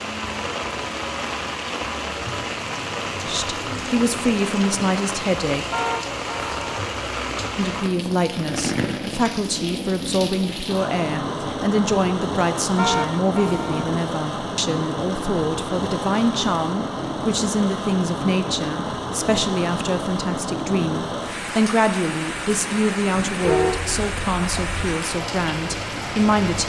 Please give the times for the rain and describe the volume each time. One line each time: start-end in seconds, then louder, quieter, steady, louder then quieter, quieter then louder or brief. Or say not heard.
0.0-26.6 steady.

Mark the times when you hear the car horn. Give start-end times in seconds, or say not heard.
5.7-6.8, 12.8-13.9, 23.4-24.9.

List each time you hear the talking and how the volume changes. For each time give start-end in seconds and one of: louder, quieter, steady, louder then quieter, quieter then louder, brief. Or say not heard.
3.2-5.7 brief
7.5-26.6 steady.